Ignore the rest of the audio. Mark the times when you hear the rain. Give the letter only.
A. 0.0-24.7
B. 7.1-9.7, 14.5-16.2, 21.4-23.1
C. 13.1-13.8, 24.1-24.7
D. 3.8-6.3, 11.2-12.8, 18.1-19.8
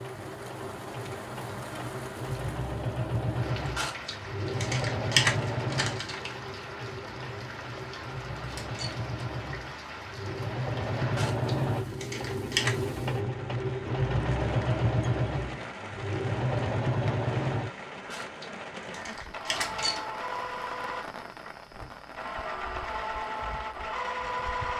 A.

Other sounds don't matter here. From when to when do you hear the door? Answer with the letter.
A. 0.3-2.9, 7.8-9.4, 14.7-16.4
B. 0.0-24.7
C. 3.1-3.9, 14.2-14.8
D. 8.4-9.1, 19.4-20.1
D.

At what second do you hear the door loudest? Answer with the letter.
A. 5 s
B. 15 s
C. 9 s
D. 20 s
D.